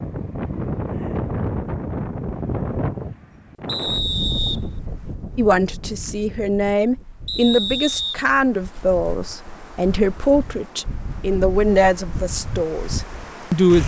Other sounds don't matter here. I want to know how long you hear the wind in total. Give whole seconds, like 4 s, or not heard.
14 s.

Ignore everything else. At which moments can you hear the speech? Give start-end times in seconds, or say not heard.
5.3-13.8.